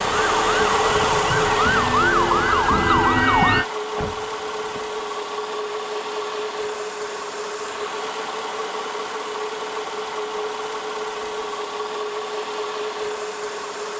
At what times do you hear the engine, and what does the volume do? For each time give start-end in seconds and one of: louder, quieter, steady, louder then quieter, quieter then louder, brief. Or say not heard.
0.0-13.9 quieter.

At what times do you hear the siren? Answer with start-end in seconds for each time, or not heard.
0.0-3.6.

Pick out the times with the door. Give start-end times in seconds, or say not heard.
4.0-4.8.